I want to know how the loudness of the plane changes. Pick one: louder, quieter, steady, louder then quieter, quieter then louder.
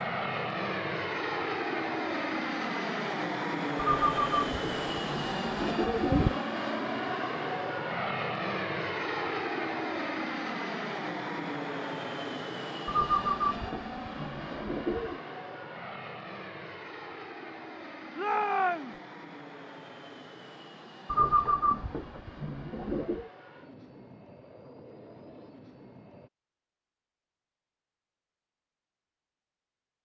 quieter.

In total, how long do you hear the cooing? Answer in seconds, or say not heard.
7 s.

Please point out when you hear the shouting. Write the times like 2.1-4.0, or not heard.
18.1-19.0.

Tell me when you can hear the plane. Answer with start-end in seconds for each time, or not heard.
0.0-26.3.